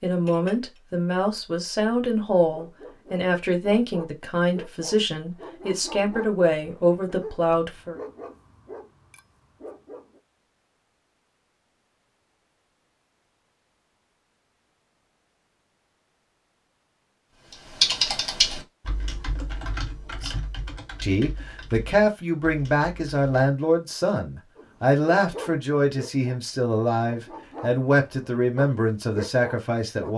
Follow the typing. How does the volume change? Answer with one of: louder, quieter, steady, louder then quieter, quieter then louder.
quieter.